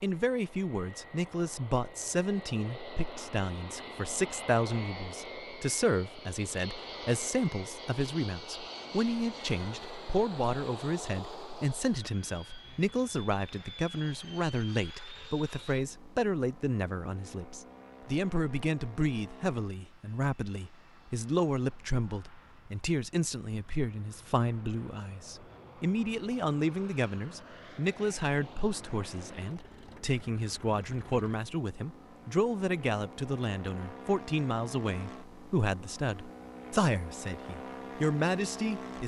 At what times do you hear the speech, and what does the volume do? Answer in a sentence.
You can hear the speech from 0.0 to 39.0 s, at a steady volume.